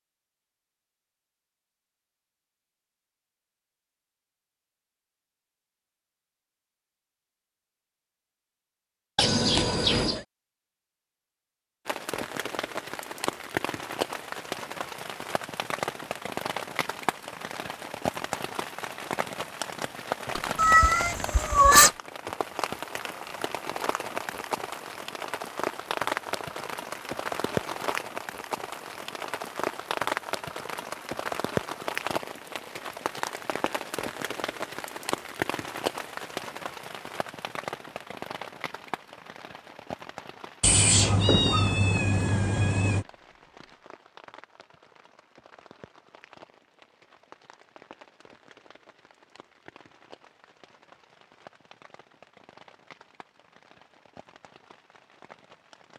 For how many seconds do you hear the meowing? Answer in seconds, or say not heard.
5 s.